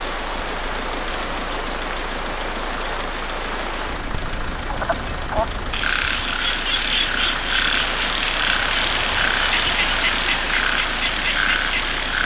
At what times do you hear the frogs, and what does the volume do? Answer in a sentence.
You can hear the frogs from 4.7 to 12.2 s, at a steady volume.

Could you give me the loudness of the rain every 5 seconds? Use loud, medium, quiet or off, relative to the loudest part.
medium, loud, loud.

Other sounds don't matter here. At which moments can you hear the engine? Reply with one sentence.
The engine can be heard from 0.0 to 12.2 s.